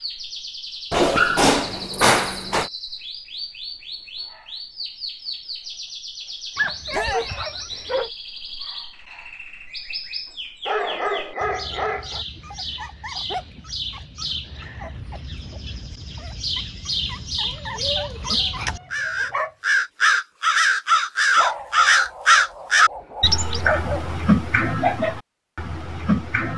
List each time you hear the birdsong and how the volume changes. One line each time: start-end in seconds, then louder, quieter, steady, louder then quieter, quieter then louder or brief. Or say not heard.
0.0-26.5 louder.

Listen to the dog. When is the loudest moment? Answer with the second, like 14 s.
1 s.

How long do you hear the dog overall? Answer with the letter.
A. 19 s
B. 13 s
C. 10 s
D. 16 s
C.